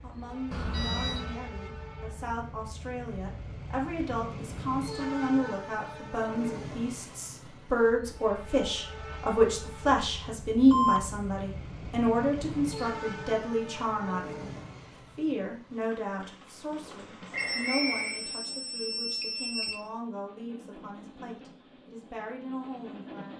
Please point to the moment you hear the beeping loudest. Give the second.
11 s.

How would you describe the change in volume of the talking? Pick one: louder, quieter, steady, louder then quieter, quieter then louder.
louder then quieter.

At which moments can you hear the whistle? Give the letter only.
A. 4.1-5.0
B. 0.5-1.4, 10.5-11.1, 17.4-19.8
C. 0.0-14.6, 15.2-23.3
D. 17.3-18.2
D.